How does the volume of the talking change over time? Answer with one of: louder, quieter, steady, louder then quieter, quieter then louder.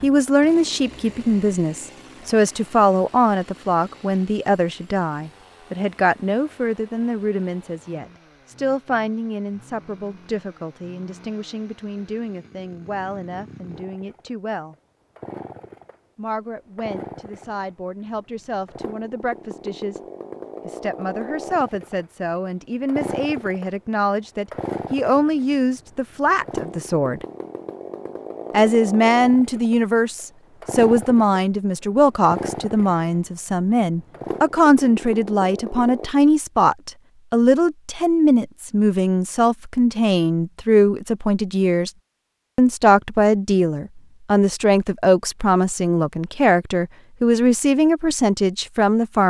quieter then louder.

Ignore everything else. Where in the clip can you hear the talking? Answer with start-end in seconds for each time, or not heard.
0.0-14.8, 16.1-20.0, 20.6-27.2, 28.5-41.9, 42.5-49.2.